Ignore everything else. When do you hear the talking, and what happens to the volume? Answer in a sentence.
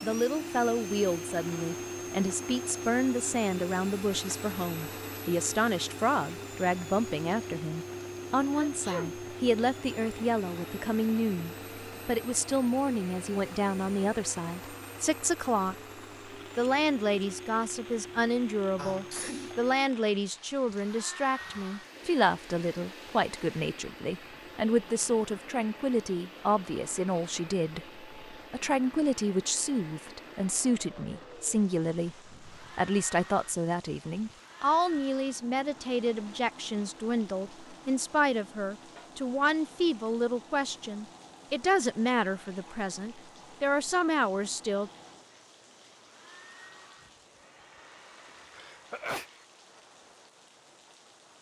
The talking can be heard from 0.0 to 15.8 s, at a steady volume; and from 16.6 to 44.9 s, at a steady volume.